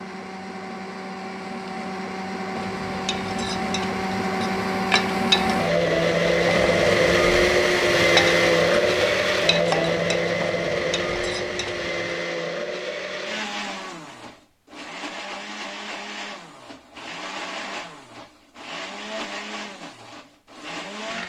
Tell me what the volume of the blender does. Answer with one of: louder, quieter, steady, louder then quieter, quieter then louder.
louder then quieter.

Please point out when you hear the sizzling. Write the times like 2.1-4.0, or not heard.
2.5-12.2.